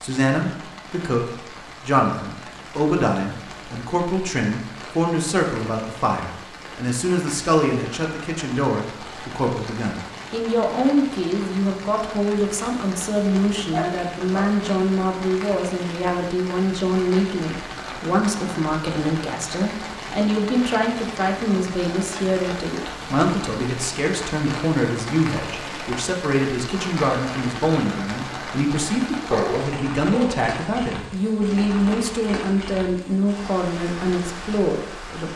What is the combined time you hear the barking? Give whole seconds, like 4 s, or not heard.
2 s.